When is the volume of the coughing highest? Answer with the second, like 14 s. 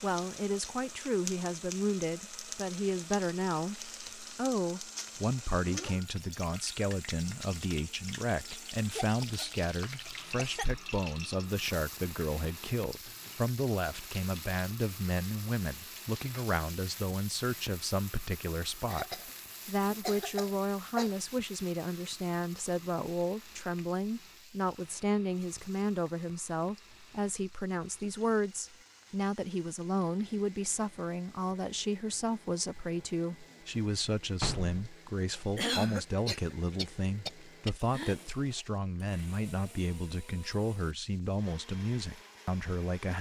36 s.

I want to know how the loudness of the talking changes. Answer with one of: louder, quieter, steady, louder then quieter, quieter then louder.
steady.